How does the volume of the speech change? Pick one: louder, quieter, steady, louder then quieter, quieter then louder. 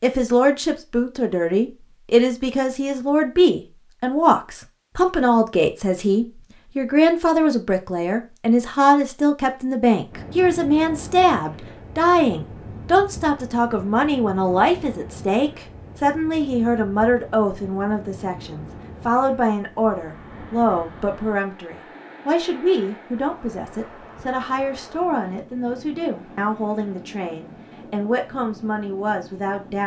quieter.